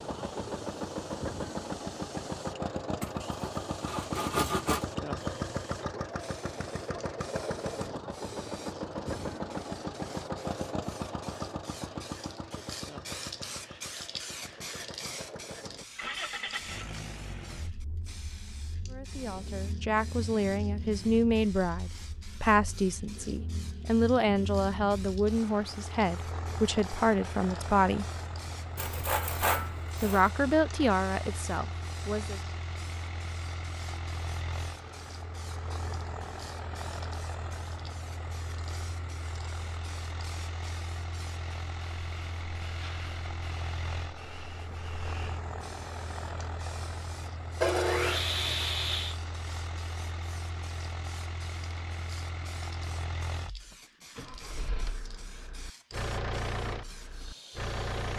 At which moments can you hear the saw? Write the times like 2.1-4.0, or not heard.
3.0-4.8, 28.8-30.2, 47.6-49.1.